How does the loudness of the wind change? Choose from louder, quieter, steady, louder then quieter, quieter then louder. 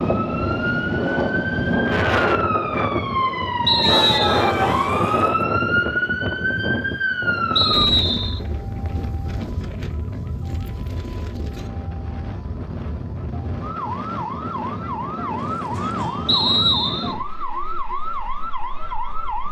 quieter.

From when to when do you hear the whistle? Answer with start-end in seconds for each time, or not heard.
3.6-4.5, 7.5-8.4, 16.2-17.1.